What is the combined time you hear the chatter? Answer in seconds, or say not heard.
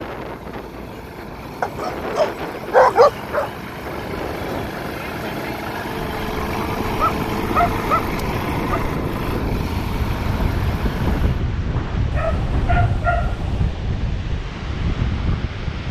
not heard.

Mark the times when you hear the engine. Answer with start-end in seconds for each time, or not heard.
0.0-11.4.